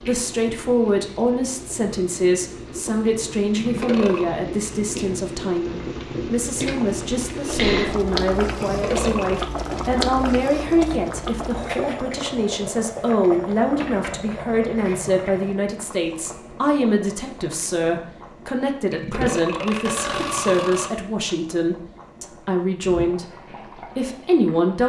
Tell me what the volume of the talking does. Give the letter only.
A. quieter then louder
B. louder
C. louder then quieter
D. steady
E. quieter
D.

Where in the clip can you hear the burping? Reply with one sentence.
You can hear the burping from 3.6 to 4.3 s, from 8.6 to 9.4 s and from 18.9 to 20.9 s.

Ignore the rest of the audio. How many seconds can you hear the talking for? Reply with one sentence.
The talking can be heard for 25 seconds in total.